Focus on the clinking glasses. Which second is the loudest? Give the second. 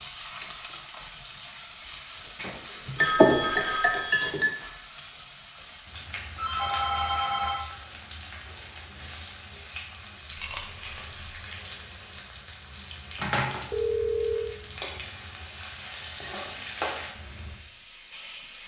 3 s.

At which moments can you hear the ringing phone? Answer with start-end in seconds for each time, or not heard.
3.0-4.4, 6.3-7.6, 13.7-14.6.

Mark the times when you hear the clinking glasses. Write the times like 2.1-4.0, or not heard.
2.4-4.5, 10.3-11.0.